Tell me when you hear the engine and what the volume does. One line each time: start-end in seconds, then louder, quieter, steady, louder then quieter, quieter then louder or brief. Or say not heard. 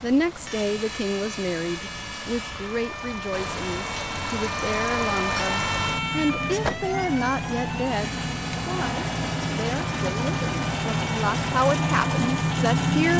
0.0-13.1 louder.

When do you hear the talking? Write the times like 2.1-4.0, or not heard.
0.0-13.1.